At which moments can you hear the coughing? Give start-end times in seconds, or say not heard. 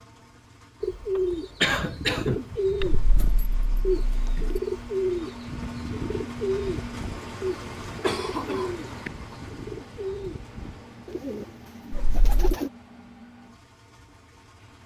1.1-2.9, 8.0-9.1.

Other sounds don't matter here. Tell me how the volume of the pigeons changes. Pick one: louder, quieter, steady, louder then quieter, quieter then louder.
quieter.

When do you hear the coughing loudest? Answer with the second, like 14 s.
2 s.